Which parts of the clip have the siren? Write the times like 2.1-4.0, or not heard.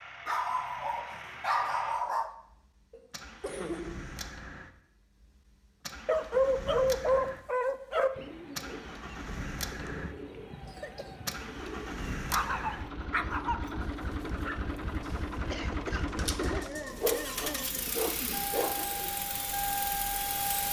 not heard.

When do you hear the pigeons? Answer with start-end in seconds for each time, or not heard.
8.1-19.1.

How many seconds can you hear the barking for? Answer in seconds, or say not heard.
8 s.